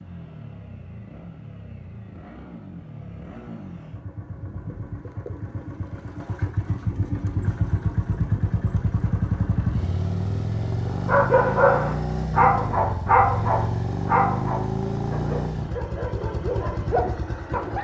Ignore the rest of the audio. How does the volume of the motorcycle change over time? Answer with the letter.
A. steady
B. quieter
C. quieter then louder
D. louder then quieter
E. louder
E.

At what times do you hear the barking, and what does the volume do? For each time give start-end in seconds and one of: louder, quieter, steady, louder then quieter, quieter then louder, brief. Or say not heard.
11.1-17.7 quieter then louder.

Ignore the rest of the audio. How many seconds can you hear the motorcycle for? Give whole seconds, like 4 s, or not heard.
18 s.